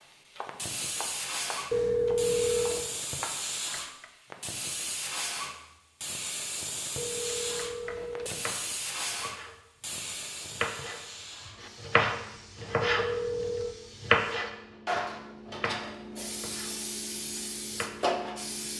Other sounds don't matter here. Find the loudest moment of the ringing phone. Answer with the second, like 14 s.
2 s.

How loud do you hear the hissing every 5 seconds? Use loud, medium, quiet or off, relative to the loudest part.
loud, loud, medium, loud.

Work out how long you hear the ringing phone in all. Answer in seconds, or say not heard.
4 s.